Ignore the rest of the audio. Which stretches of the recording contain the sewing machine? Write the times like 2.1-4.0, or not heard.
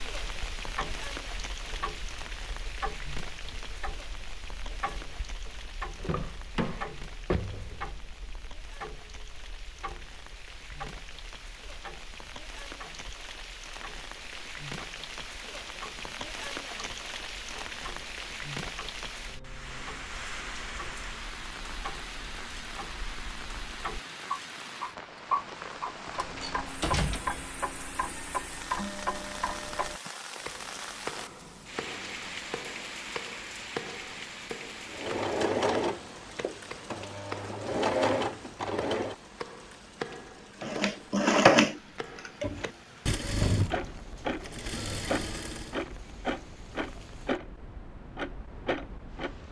34.9-39.1, 40.6-45.8.